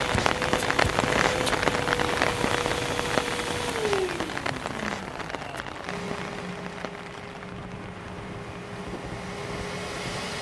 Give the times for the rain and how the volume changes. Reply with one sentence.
You can hear the rain from 0.0 to 10.3 s, getting quieter.